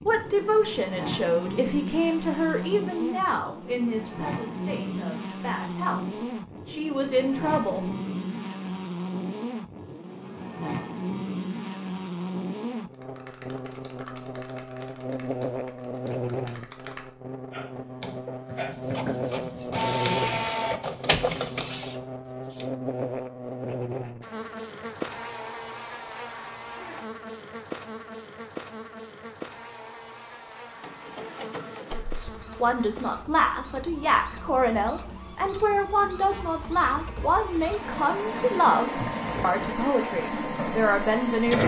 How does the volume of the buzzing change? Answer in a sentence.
The volume of the buzzing goes down.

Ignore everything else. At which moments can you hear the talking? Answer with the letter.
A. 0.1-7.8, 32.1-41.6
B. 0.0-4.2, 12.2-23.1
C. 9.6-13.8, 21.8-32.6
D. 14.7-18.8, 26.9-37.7
A.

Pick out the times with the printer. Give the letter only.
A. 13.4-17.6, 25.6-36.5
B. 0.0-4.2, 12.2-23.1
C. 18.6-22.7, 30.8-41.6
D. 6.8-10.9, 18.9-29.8
C.